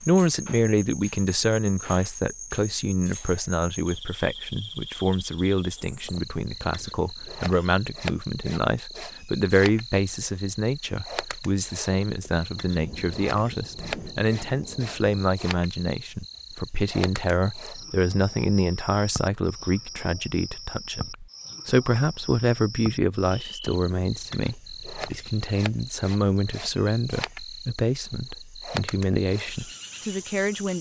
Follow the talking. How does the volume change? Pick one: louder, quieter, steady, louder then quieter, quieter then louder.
steady.